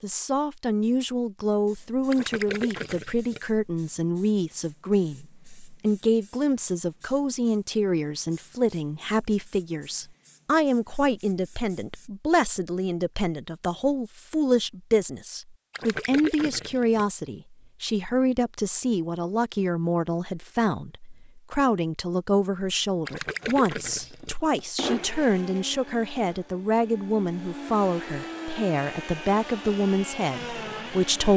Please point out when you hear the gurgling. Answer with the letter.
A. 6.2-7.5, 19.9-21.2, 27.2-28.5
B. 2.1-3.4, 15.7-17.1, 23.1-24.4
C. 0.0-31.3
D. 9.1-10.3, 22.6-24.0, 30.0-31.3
B.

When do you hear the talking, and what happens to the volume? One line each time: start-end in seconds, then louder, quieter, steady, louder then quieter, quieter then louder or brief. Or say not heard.
0.0-31.3 steady.